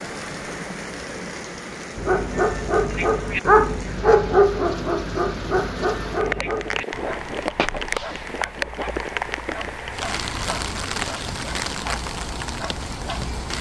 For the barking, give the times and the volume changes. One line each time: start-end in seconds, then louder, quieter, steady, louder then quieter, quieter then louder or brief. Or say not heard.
1.9-13.5 quieter.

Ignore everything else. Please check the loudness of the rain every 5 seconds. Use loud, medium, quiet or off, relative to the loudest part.
medium, loud, loud.